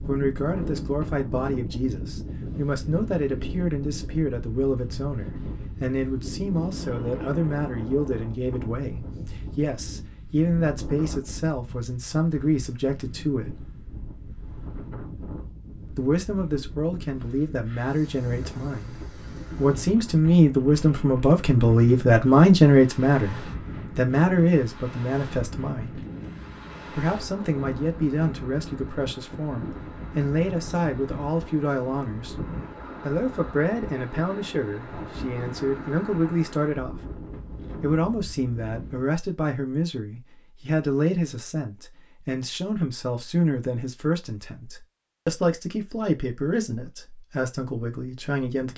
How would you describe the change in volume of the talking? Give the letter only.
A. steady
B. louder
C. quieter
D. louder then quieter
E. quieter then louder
D.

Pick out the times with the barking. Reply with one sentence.
You can't hear the barking here.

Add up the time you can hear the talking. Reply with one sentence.
The talking can be heard for 45 seconds in total.